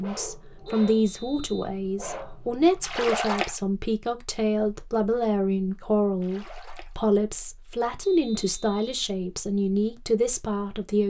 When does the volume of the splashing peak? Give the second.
3 s.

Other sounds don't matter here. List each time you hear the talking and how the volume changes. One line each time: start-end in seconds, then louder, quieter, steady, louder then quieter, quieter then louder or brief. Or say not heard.
0.0-11.0 steady.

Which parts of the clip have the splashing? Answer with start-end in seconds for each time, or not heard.
2.8-3.6, 6.2-7.0.